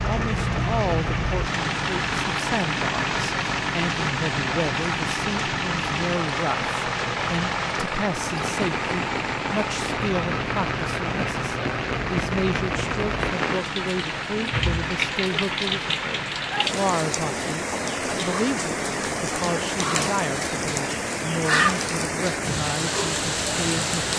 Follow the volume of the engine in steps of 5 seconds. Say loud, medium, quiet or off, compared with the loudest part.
loud, loud, medium, medium, off.